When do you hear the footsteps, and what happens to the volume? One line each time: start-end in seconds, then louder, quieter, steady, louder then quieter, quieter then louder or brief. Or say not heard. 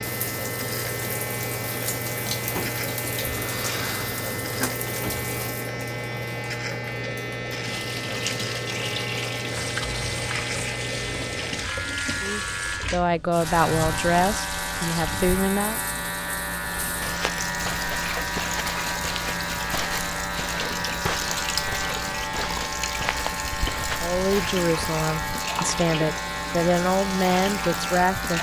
16.8-24.6 steady.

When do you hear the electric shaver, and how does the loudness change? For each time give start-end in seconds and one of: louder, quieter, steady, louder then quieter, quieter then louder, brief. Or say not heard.
0.0-28.3 steady.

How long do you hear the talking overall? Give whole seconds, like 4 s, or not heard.
8 s.